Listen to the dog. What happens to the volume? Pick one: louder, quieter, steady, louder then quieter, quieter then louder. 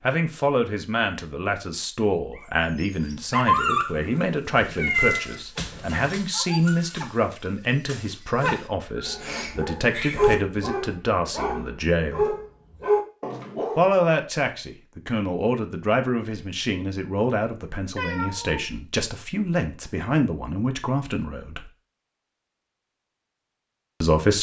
quieter then louder.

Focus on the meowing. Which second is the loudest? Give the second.
5 s.